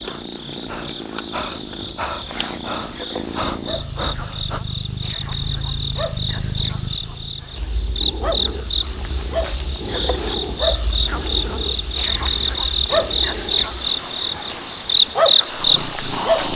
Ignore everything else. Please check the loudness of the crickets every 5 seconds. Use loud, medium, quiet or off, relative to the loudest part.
quiet, medium, medium, loud.